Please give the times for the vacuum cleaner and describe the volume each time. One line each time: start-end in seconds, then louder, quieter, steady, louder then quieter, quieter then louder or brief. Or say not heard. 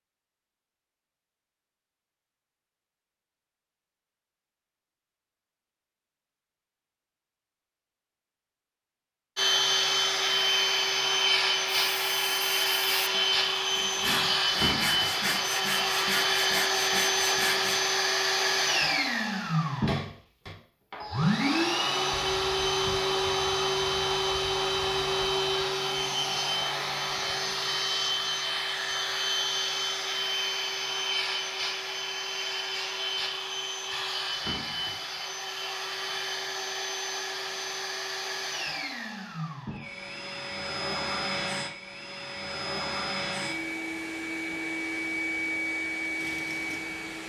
9.3-47.2 quieter.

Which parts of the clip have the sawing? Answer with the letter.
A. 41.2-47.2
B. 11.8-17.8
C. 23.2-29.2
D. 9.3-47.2
B.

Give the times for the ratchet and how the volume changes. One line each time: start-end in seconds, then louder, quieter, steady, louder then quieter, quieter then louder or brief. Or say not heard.
not heard.